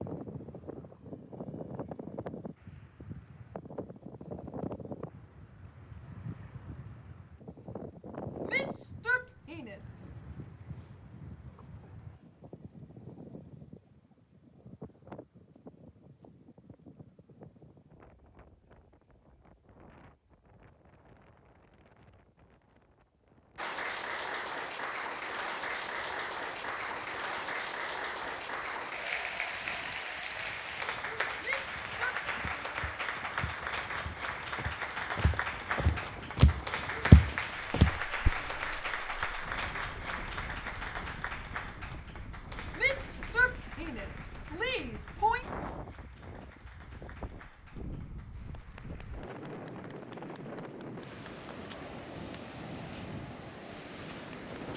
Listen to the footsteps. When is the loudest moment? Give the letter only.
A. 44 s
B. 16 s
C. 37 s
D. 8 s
C.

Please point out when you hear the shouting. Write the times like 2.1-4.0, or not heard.
8.4-9.8, 31.4-32.1, 42.8-45.5.